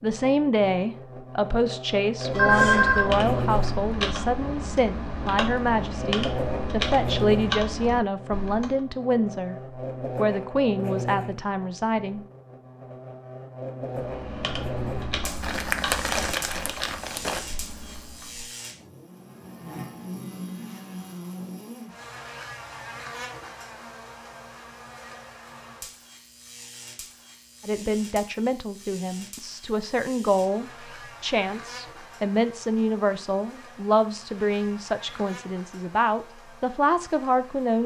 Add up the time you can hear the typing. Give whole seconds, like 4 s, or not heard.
11 s.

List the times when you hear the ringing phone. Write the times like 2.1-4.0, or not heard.
2.3-3.0.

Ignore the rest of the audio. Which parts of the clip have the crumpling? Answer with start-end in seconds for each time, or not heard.
15.4-17.4.